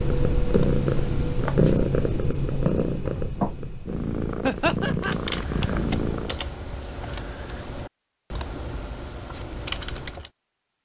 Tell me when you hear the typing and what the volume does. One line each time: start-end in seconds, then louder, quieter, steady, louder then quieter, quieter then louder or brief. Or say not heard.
0.0-1.6 brief
5.0-10.3 steady.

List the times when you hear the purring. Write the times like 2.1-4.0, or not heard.
0.0-6.5.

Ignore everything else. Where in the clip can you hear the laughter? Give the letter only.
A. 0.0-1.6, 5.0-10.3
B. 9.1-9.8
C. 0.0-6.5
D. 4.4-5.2
D.